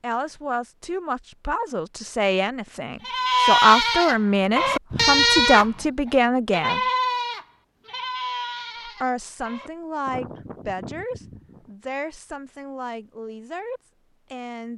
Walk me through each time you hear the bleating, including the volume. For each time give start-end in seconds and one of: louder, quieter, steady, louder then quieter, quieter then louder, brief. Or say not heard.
3.0-5.8 brief
6.5-11.8 quieter.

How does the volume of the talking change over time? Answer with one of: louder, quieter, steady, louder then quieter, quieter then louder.
louder then quieter.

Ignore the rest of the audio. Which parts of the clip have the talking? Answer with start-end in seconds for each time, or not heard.
0.0-6.8, 8.8-14.7.